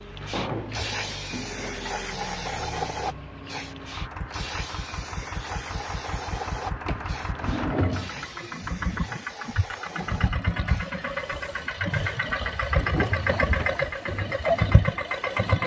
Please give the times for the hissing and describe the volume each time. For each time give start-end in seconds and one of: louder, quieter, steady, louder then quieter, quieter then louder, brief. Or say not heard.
0.1-15.6 quieter.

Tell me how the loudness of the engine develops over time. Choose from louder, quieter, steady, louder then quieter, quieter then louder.
louder.